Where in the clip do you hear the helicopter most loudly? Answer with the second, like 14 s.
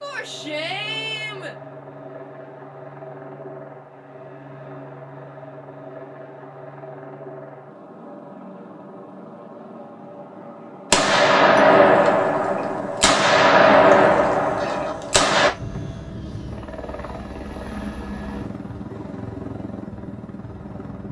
18 s.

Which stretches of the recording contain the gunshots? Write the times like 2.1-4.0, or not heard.
10.9-15.5.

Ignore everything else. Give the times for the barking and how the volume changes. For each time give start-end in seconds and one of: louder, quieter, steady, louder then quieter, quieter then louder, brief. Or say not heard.
not heard.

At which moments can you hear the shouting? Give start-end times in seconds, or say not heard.
0.0-1.6.